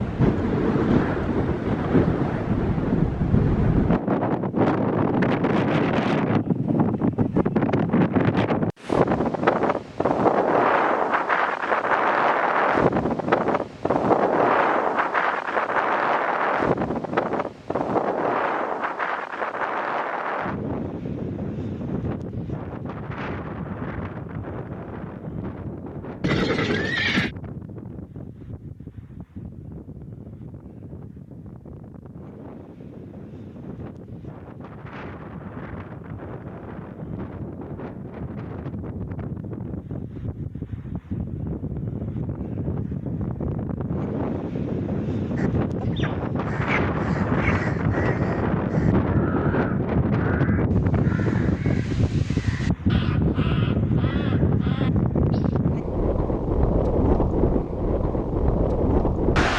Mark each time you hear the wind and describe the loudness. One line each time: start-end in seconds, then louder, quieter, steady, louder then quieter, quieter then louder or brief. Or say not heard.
0.0-59.5 quieter then louder.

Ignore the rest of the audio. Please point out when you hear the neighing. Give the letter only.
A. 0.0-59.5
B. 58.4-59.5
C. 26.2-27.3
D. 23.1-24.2
C.